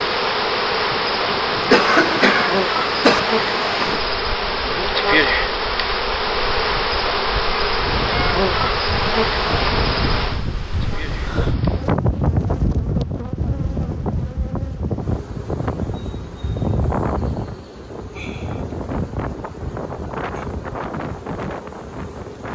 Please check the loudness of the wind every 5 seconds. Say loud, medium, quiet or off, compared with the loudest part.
medium, medium, loud, loud, medium.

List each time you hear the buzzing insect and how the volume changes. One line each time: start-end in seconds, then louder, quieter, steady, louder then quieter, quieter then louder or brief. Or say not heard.
0.0-22.4 quieter.